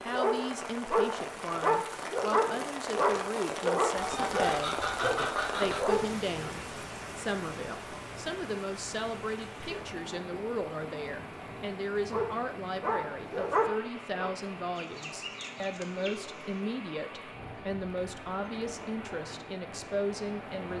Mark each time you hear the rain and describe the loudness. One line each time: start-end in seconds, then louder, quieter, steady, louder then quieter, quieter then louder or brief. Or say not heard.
0.0-20.7 quieter.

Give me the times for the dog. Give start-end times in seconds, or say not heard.
0.0-6.2, 12.1-14.3.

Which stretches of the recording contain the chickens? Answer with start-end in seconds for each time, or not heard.
4.0-5.8, 14.8-16.6.